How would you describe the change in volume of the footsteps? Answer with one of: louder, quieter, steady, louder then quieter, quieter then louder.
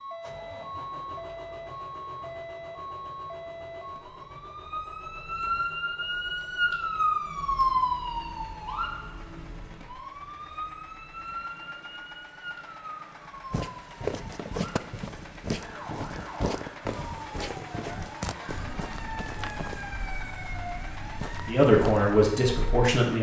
quieter.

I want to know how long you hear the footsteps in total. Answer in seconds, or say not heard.
9 s.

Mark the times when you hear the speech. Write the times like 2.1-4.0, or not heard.
21.4-23.1.